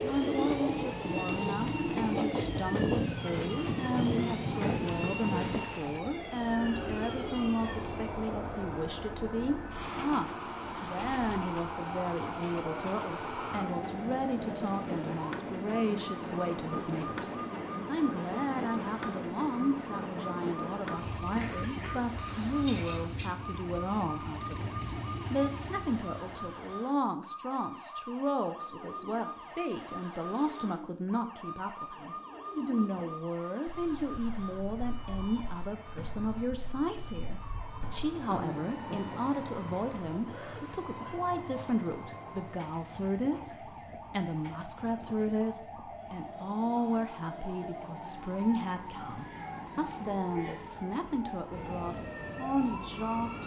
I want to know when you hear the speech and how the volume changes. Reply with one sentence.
The speech can be heard from 0.0 to 53.4 s, at a steady volume.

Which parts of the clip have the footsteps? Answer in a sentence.
The footsteps can't be heard in this clip.